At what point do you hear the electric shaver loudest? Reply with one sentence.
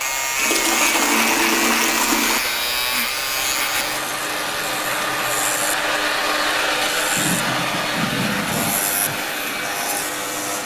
The volume of the electric shaver peaks at 1 second.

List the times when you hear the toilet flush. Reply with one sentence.
You can hear the toilet flush from 0.3 to 2.4 s and from 7.2 to 9.2 s.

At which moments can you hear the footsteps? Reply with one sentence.
The footsteps can't be heard in this clip.